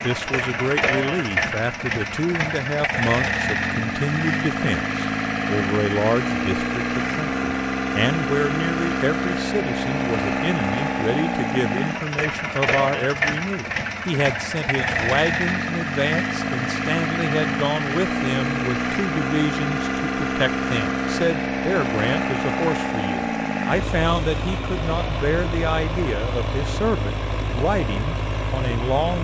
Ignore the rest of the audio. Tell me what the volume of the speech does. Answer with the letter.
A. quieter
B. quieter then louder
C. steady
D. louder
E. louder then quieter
C.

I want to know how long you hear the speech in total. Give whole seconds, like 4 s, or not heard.
29 s.